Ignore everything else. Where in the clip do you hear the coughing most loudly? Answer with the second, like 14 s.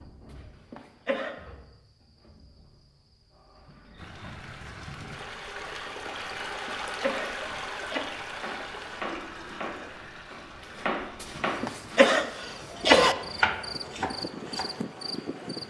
13 s.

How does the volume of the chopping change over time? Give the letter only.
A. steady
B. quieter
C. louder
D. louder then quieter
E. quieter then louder
C.